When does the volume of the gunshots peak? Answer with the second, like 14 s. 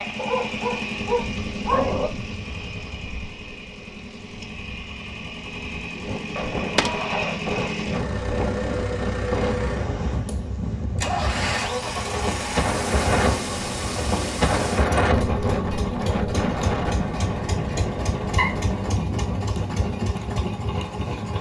7 s.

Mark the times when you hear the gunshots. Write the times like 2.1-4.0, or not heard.
6.3-8.2.